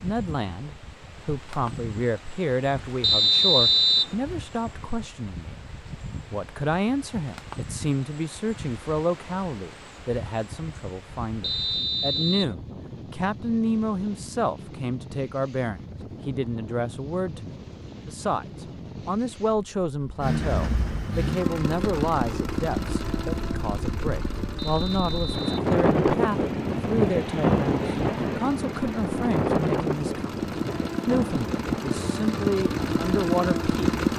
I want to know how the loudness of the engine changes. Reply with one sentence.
The loudness of the engine goes down, then up.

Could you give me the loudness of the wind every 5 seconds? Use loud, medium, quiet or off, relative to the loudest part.
quiet, quiet, quiet, quiet, quiet, loud, medium.